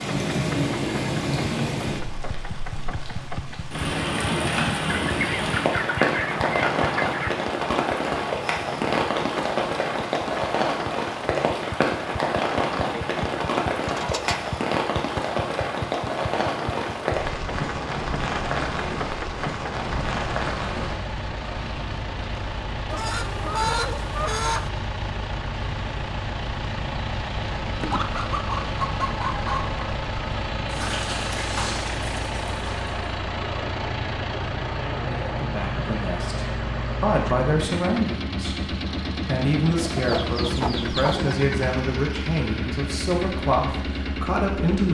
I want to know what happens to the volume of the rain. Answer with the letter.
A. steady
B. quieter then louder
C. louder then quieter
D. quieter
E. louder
D.